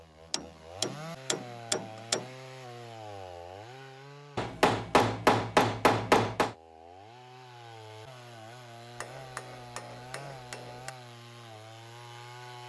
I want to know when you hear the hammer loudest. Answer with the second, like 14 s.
5 s.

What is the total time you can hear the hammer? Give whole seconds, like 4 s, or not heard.
6 s.